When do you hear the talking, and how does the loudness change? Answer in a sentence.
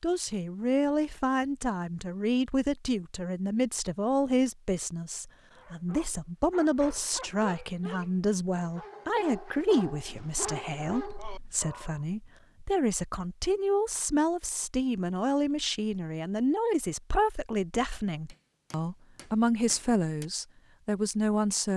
The talking can be heard from 0.0 to 21.7 s, at a steady volume.